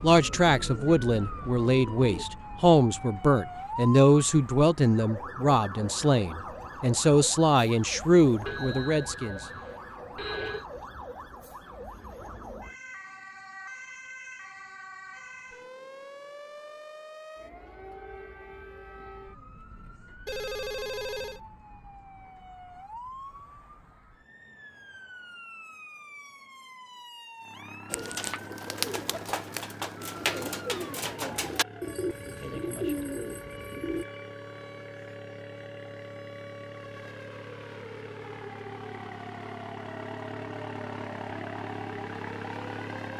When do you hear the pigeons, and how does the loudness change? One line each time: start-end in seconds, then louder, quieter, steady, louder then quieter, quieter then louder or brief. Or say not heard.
0.1-2.2 brief
27.9-34.0 steady.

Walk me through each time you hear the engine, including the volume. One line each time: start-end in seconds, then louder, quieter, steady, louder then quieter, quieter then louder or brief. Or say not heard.
27.4-43.1 louder.